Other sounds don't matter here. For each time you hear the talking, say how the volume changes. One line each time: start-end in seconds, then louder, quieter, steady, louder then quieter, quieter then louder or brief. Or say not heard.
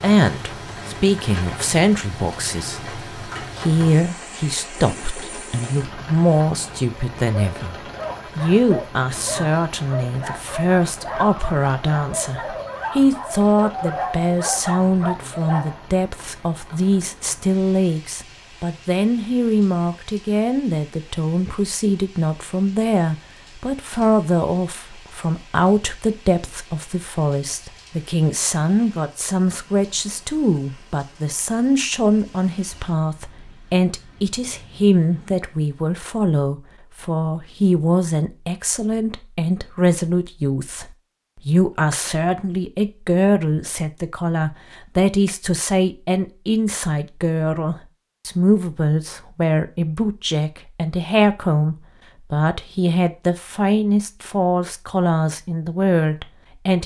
0.0-56.8 steady.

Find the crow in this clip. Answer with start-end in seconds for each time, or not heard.
not heard.